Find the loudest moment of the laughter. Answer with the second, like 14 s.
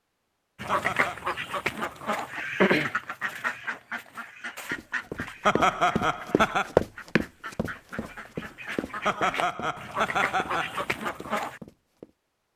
6 s.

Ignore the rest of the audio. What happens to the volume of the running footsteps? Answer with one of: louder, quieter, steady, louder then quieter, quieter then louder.
louder then quieter.